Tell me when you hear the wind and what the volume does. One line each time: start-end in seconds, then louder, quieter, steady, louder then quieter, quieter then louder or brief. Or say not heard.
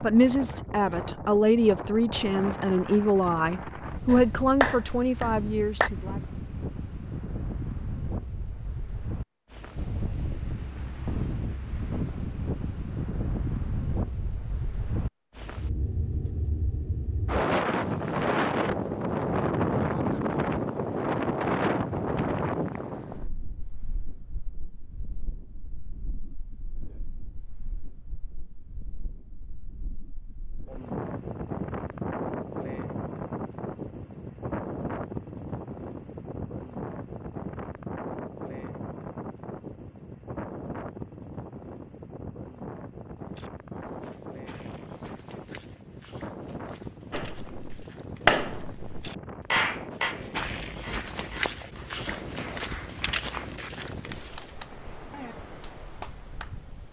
0.0-56.8 louder then quieter.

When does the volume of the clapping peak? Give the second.
48 s.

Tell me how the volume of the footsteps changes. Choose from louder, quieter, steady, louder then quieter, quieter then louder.
louder.